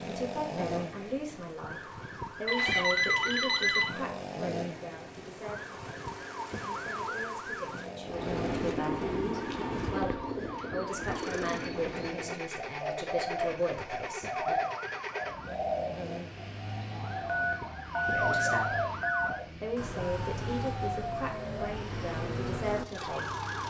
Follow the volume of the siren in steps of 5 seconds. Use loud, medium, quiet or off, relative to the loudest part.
loud, loud, medium, loud, loud.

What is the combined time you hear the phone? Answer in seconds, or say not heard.
5 s.